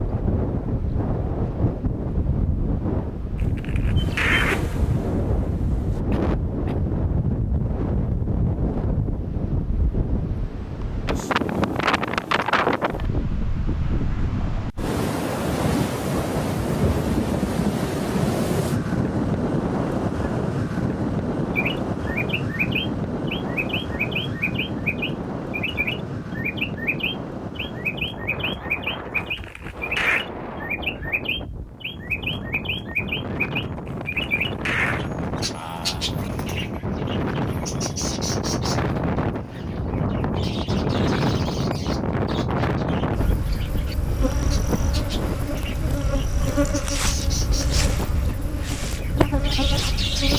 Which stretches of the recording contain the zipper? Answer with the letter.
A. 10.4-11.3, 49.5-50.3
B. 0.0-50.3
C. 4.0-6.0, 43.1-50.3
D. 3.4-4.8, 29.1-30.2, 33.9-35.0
D.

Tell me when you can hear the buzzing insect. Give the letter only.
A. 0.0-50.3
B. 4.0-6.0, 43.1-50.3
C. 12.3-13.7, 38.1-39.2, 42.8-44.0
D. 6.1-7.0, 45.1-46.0
B.